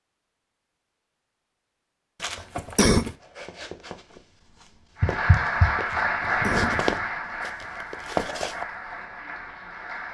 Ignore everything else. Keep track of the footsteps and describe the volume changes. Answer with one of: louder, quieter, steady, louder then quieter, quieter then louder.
louder.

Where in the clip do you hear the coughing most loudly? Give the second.
3 s.